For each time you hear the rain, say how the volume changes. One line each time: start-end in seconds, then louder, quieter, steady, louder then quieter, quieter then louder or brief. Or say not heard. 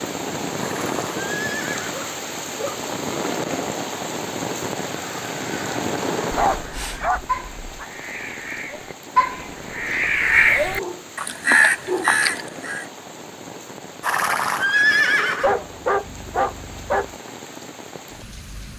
0.0-18.7 quieter.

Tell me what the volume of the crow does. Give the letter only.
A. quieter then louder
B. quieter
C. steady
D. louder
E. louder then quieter
D.